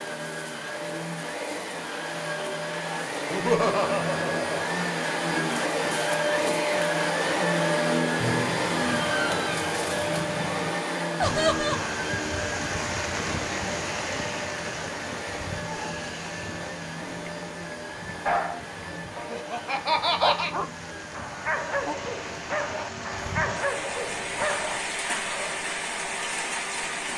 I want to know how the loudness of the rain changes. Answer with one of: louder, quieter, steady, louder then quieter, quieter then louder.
quieter then louder.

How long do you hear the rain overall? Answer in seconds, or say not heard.
16 s.